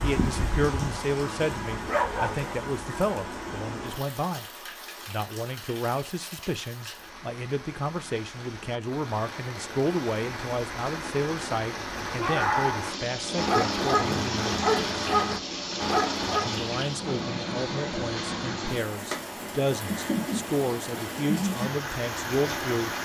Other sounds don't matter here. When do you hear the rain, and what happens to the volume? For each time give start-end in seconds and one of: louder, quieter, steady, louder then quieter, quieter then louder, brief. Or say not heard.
0.0-23.0 quieter then louder.